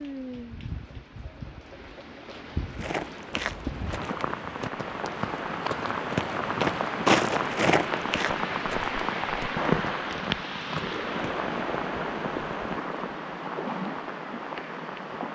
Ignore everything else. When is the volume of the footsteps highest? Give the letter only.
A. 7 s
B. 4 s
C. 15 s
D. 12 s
A.